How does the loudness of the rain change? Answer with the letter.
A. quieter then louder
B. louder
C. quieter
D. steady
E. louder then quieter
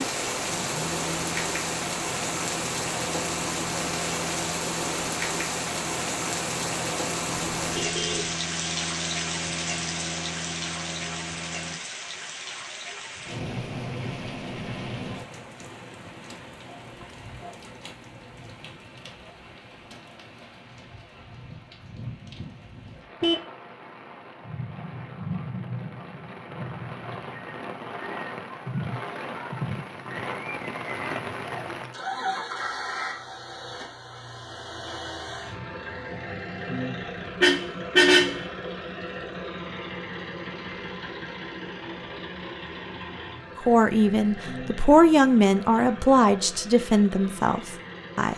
A.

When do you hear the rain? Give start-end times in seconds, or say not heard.
0.0-31.9.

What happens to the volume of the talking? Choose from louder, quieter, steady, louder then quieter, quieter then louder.
louder then quieter.